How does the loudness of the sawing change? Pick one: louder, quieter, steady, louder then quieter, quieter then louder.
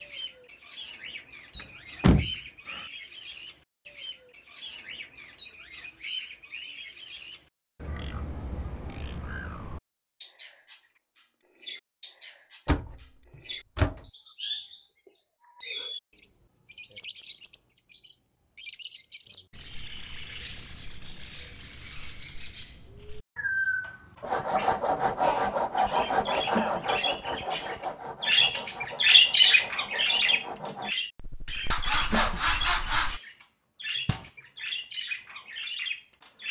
quieter then louder.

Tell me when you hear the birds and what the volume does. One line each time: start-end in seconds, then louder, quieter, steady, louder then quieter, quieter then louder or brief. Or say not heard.
0.0-36.4 louder.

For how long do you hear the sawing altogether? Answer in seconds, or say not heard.
9 s.